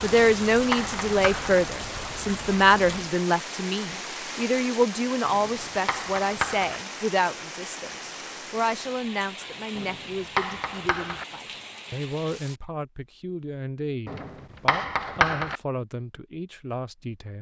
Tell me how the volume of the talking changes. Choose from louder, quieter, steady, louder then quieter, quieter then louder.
quieter.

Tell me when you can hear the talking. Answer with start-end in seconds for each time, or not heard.
0.0-17.3.